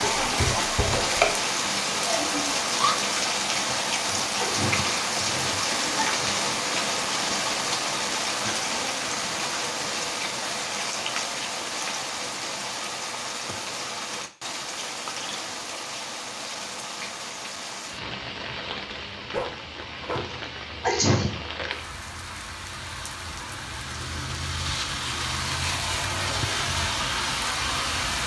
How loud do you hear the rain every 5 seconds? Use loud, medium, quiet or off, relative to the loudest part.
loud, loud, medium, medium, medium, loud.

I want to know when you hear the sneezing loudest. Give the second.
21 s.